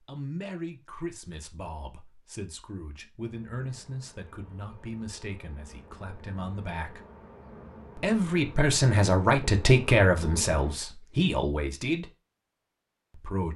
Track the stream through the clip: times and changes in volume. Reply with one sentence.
You can't hear the stream here.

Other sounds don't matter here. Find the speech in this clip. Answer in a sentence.
The speech can be heard from 0.0 to 7.0 s, from 8.0 to 12.1 s and from 13.1 to 13.5 s.